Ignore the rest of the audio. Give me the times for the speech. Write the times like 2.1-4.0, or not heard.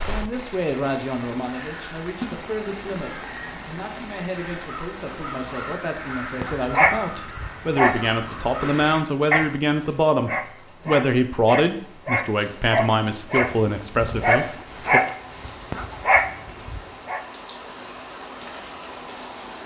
0.0-15.0.